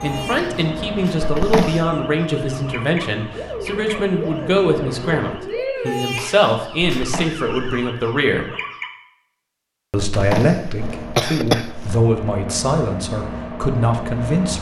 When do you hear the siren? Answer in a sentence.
You can hear the siren from 0.0 to 8.9 s.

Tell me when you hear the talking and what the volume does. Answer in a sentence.
You can hear the talking from 0.0 to 8.4 s, at a steady volume; and from 9.9 to 14.5 s, at a steady volume.